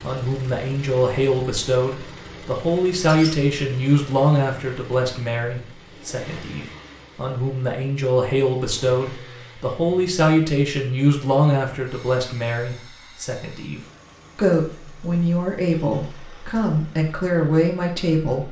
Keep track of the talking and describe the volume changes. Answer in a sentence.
The loudness of the talking stays about the same.